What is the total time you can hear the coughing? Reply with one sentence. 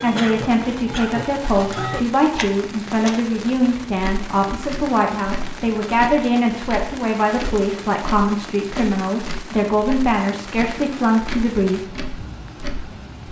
You can hear the coughing for 2 seconds altogether.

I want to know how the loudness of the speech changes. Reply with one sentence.
The loudness of the speech stays about the same.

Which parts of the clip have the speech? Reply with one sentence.
The speech can be heard from 0.0 to 11.9 s.